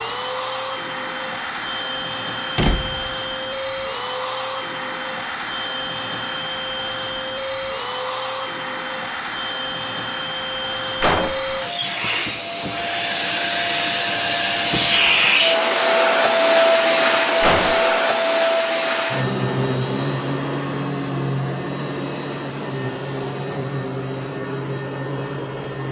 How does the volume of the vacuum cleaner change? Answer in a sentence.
The loudness of the vacuum cleaner goes up, then down.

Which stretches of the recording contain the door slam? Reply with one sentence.
You can hear the door slam from 2.5 to 3.1 s, from 11.0 to 11.6 s and from 17.4 to 17.8 s.